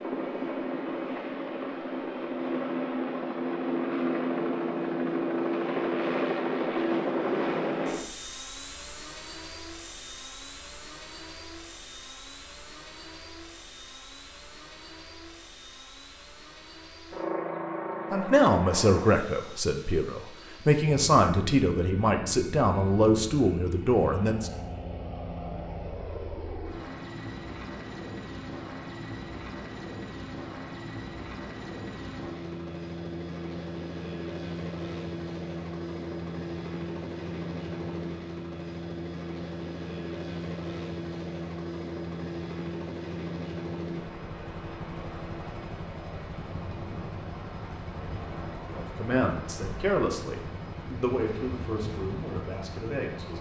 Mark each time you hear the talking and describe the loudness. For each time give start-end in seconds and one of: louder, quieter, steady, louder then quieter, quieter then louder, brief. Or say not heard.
18.1-24.5 steady
48.7-53.3 quieter.